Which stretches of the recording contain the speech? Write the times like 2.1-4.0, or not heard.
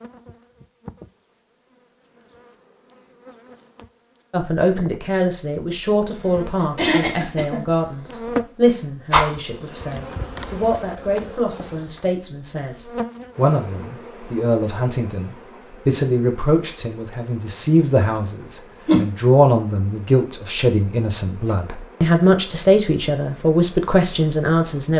4.3-24.9.